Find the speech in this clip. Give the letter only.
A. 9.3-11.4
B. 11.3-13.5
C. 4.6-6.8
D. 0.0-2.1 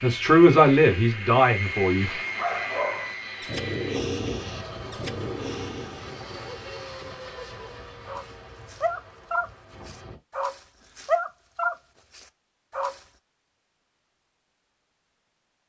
D.